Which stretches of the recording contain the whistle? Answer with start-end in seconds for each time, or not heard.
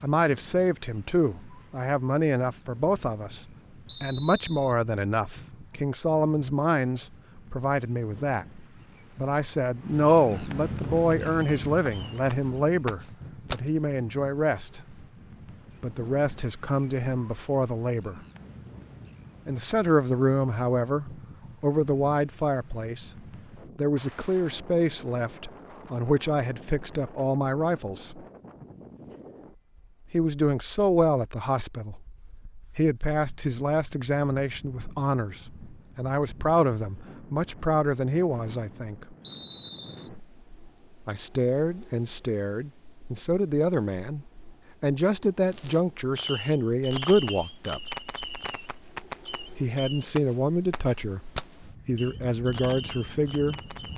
3.9-4.8, 39.2-40.1.